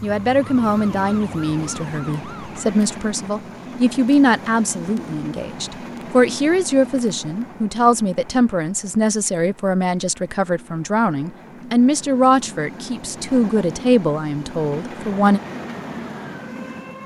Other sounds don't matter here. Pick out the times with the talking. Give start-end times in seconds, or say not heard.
0.0-15.4.